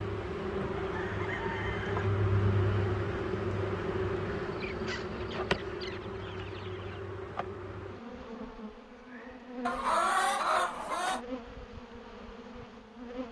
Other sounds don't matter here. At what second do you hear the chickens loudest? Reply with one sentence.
The volume of the chickens peaks at 10 seconds.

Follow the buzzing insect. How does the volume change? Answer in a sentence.
The loudness of the buzzing insect goes down.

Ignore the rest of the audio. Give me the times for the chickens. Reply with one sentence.
You can hear the chickens from 0.8 to 2.1 s, from 4.5 to 7.0 s and from 9.7 to 11.2 s.